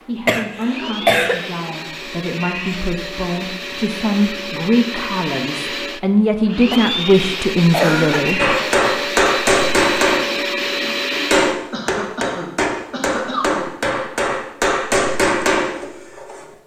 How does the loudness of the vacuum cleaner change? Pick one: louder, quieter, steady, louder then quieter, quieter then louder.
louder.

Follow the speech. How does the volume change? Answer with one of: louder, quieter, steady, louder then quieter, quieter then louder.
louder.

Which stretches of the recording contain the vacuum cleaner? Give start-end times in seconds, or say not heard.
0.0-11.5.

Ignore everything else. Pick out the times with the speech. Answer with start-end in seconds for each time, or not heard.
0.1-8.5.